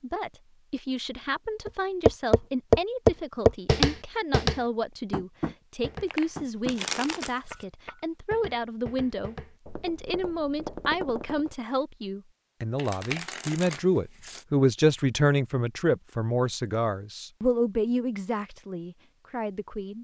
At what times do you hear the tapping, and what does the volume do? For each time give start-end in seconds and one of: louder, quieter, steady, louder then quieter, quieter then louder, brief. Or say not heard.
1.6-11.6 quieter.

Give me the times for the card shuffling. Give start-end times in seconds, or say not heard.
6.0-7.7, 12.8-14.4.